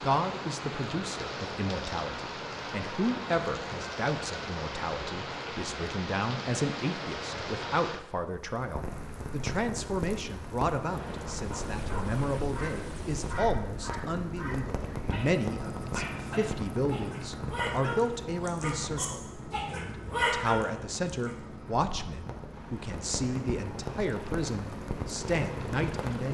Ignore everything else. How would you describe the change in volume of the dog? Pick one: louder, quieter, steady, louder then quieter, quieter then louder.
louder.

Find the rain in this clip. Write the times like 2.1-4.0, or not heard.
0.0-26.2.